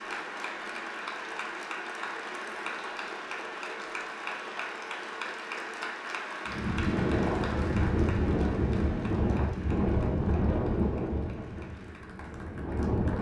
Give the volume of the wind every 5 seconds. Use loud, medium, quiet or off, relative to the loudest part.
off, loud, loud.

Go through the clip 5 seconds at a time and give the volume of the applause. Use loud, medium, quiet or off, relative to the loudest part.
loud, loud, quiet.